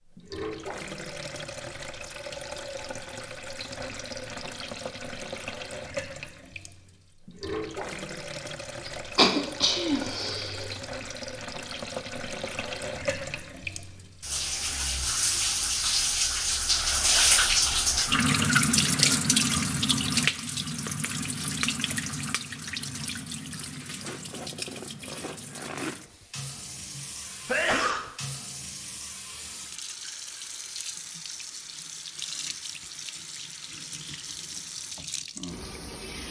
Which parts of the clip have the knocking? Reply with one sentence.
You can't hear the knocking here.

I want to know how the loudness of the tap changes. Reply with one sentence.
The volume of the tap goes up, then down.